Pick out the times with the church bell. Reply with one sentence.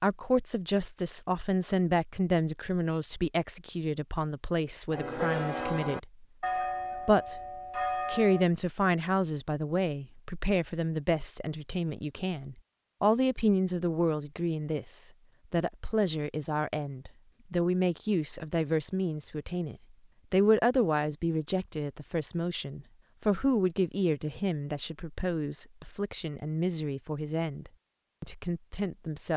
The church bell can be heard from 4.9 to 8.4 s.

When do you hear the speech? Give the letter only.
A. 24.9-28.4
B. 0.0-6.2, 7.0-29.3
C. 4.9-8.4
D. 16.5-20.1
B.